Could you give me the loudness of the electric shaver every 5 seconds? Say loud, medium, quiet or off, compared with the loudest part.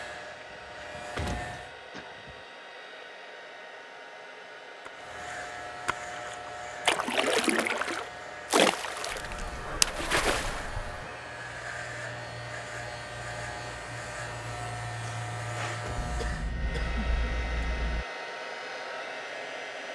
medium, medium, loud, loud.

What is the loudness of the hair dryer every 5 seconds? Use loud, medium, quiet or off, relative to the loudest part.
medium, medium, medium, loud.